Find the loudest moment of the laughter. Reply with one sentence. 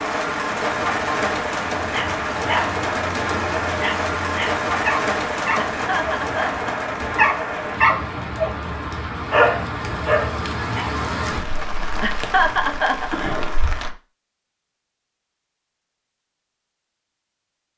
The volume of the laughter peaks at 13 seconds.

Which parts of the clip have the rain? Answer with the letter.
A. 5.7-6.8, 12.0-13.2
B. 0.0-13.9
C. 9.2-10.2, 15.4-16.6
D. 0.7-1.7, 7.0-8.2
B.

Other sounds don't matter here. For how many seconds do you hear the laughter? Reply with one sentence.
The laughter can be heard for 2 seconds in total.